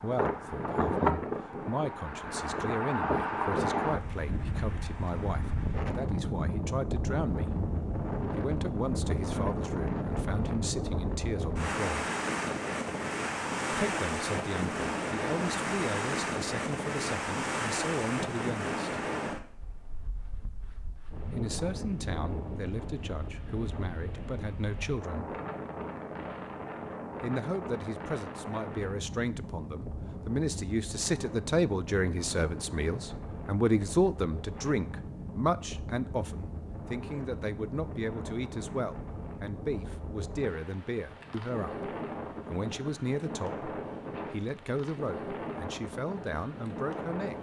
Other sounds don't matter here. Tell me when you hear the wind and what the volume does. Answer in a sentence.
The wind can be heard from 0.0 to 47.3 s, getting quieter.